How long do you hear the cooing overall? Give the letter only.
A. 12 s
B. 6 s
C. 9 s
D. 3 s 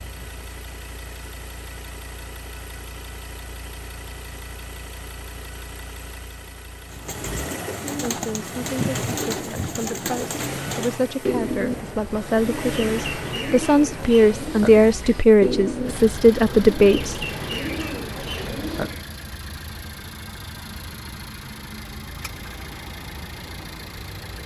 A.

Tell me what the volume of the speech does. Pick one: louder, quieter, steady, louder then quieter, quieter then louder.
louder.